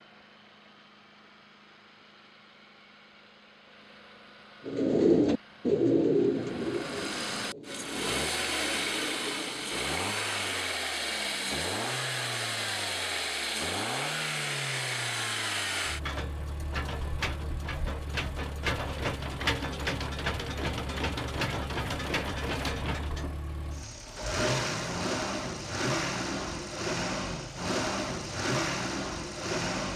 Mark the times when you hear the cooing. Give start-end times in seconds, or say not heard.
4.7-9.8.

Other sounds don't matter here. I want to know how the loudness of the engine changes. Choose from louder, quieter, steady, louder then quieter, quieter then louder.
louder.